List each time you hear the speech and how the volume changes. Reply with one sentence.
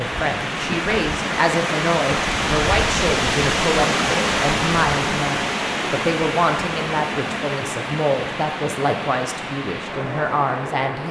The speech can be heard from 0.0 to 11.0 s, at a steady volume.